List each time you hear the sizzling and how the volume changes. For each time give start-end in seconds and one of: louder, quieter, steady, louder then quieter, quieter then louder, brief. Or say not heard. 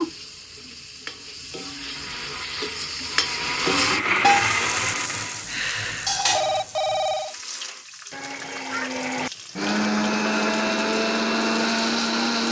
0.0-12.4 louder then quieter.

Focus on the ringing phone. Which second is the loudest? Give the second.
7 s.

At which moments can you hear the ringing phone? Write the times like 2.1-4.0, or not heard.
5.5-7.3.